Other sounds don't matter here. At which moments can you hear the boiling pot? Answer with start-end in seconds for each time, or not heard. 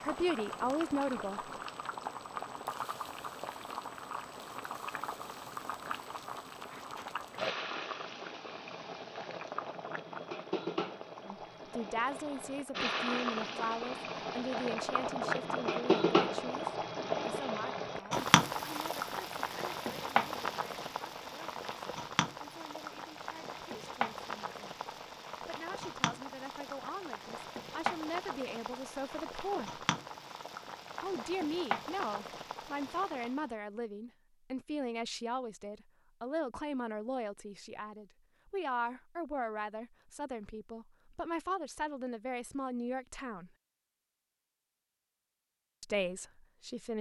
0.0-33.5.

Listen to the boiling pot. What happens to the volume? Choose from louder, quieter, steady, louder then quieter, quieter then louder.
louder then quieter.